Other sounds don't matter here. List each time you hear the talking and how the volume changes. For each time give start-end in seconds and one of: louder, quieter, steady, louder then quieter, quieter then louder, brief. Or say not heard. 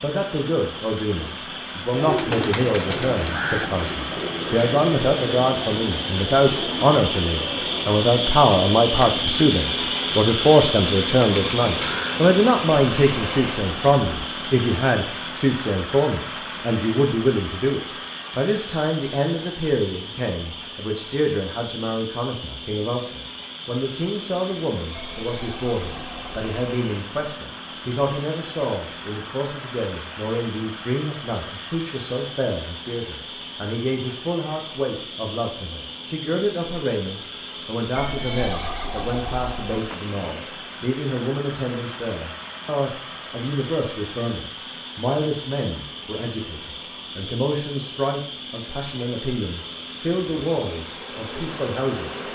0.0-52.2 quieter.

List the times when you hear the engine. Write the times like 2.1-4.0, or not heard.
0.0-52.3.